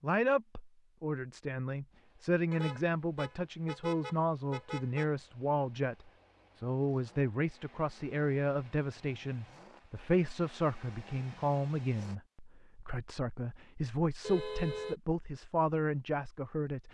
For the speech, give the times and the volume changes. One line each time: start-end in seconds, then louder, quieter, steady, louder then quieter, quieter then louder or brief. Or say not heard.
0.0-16.8 steady.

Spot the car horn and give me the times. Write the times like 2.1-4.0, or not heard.
2.5-5.1, 14.2-15.0.